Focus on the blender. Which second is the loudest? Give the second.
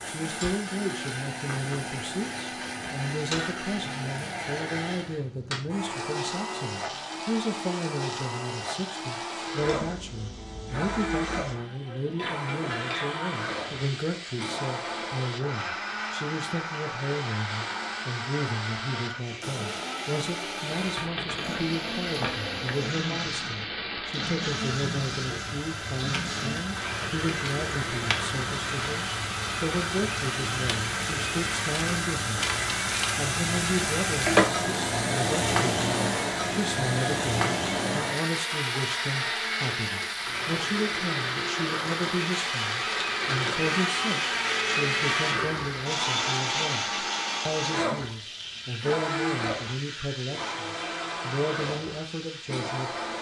45 s.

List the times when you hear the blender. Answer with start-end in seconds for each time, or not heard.
0.0-53.1.